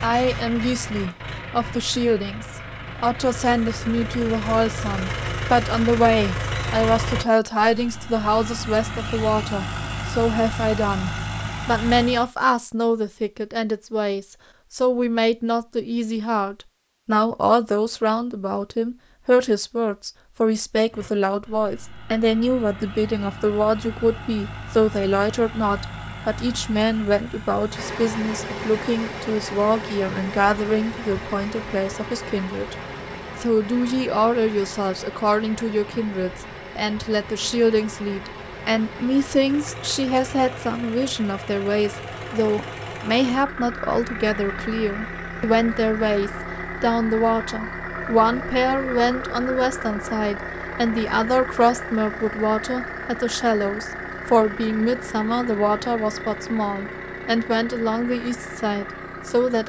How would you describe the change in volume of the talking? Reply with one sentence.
The volume of the talking stays about the same.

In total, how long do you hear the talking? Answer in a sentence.
The talking can be heard for 59 seconds in total.